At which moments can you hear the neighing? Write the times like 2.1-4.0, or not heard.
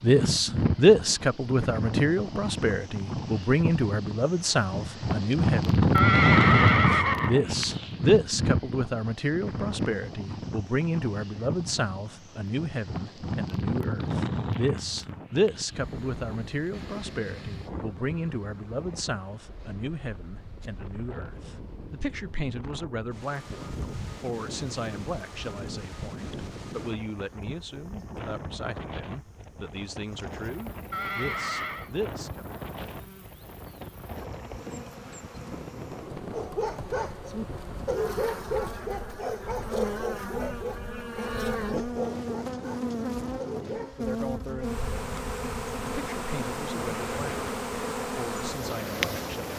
5.9-7.3, 30.9-31.9.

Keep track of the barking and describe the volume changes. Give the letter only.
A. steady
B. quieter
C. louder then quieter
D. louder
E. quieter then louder
B.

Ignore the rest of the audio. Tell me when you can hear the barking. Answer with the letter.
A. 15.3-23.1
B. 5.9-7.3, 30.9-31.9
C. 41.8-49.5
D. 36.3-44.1
D.